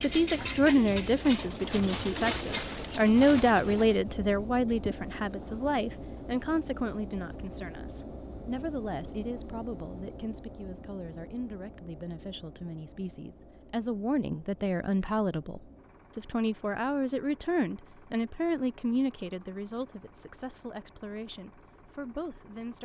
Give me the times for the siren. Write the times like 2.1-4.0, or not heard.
not heard.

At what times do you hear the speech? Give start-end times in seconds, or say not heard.
0.0-22.8.